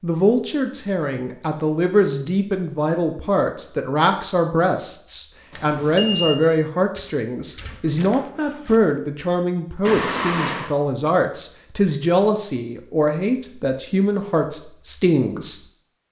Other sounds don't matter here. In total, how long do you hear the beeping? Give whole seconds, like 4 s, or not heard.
2 s.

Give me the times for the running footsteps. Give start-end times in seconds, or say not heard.
not heard.